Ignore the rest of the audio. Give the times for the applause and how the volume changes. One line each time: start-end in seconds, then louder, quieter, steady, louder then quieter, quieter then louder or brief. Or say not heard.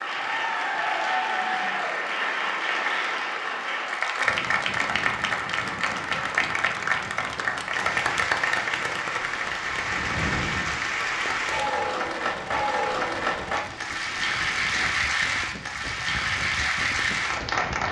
0.0-17.8 steady.